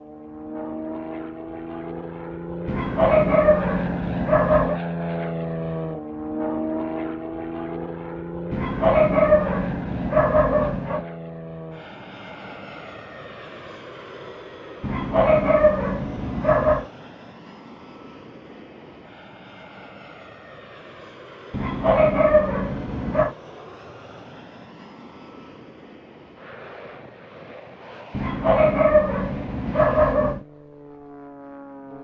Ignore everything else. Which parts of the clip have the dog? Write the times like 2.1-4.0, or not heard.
2.6-4.8, 8.5-11.1, 14.8-16.9, 21.5-23.4, 28.1-30.4.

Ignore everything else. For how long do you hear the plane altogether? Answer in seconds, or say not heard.
32 s.